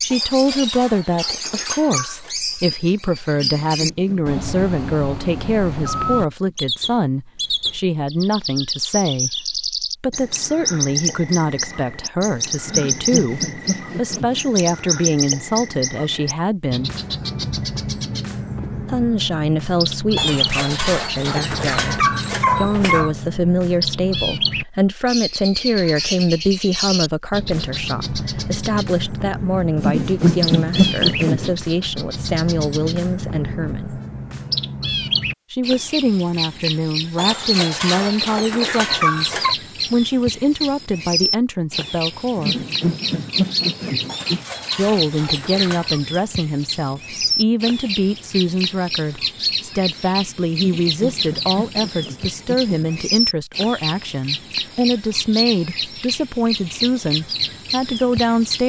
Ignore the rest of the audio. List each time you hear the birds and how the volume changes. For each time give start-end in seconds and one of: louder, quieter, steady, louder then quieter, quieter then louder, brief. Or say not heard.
0.0-58.6 steady.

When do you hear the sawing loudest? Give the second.
31 s.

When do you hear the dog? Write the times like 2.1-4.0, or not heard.
0.1-2.4, 20.1-23.1, 37.1-39.5, 44.0-46.0.